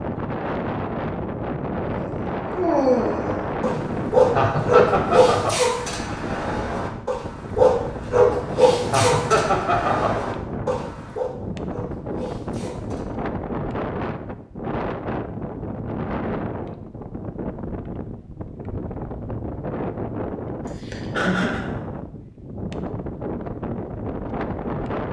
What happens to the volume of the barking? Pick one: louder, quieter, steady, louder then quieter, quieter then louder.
quieter.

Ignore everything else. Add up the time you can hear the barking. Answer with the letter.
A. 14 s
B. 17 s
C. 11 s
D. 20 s
C.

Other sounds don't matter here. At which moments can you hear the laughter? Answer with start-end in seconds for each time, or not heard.
4.3-5.5, 8.9-10.2, 20.6-21.6.